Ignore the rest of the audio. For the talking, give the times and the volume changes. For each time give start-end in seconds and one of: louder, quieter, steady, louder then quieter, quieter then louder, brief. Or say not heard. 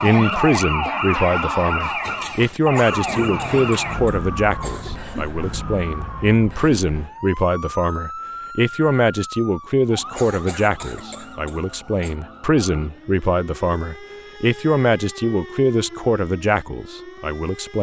0.0-17.7 steady.